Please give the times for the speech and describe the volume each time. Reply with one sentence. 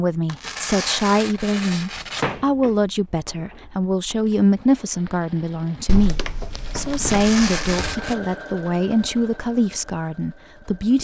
You can hear the speech from 0.0 to 10.9 s, at a steady volume.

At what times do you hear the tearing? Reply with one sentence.
You can hear the tearing from 0.2 to 2.2 s and from 6.9 to 8.2 s.